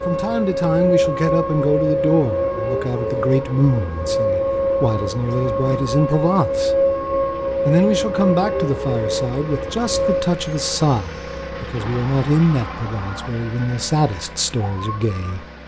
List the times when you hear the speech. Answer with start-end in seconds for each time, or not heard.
0.1-6.8, 7.7-15.4.